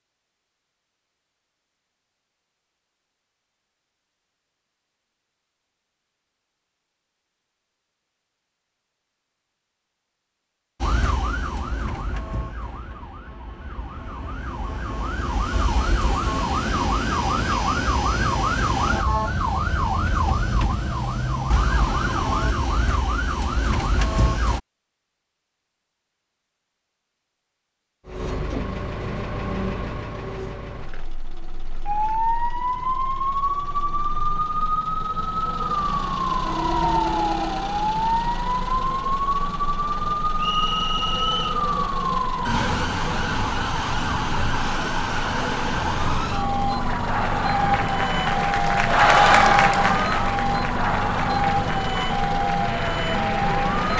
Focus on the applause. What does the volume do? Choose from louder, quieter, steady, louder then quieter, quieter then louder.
louder then quieter.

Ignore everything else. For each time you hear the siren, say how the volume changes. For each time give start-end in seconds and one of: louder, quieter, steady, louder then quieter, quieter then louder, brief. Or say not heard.
10.8-24.6 louder
31.9-53.9 steady.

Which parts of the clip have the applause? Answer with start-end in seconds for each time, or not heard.
46.8-53.9.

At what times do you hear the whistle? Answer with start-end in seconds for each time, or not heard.
40.4-41.6.